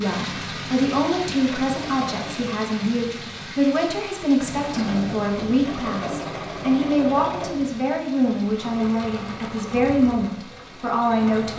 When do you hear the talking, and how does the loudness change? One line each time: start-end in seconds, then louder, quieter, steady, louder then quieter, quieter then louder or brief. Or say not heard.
0.0-11.5 steady.